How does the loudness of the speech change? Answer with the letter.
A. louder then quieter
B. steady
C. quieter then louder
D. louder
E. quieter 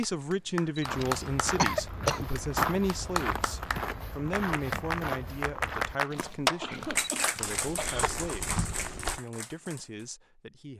E.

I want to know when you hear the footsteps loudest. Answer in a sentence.
The loudest moment of the footsteps is at 3 seconds.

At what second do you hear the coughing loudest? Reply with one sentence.
The volume of the coughing peaks at 2 seconds.